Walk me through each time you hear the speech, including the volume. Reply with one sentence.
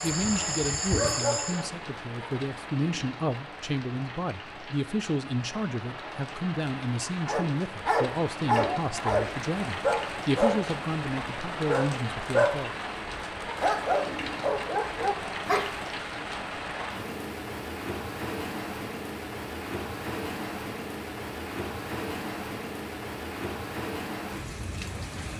You can hear the speech from 0.0 to 12.8 s, at a steady volume.